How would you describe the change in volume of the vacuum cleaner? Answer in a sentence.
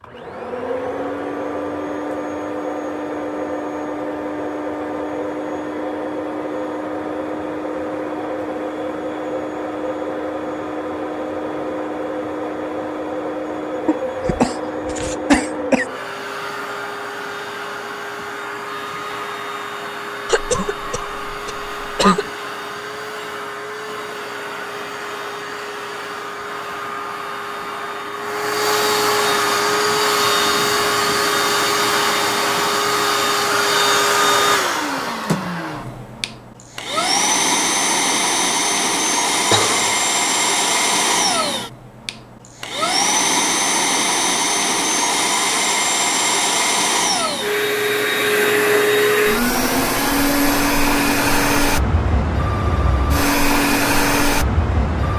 The volume of the vacuum cleaner goes up.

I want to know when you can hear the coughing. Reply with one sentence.
The coughing can be heard from 13.8 to 15.8 s, from 20.2 to 22.2 s and from 39.5 to 40.0 s.